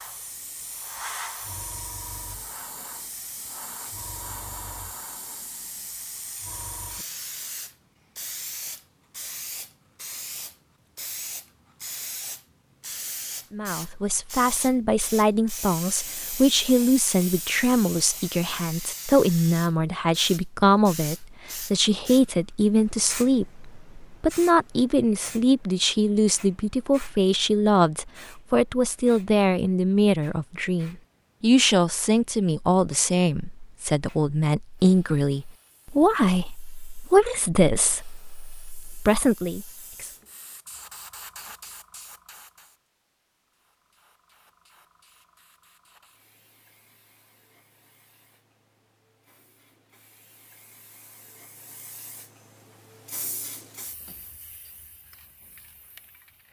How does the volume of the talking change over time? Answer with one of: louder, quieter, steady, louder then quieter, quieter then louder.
steady.